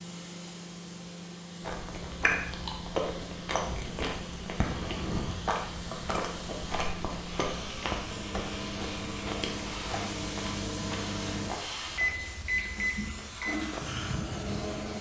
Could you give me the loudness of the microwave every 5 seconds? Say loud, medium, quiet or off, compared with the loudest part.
medium, medium, loud.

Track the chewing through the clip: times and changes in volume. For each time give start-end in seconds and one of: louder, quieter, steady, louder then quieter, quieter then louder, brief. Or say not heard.
1.6-13.3 quieter.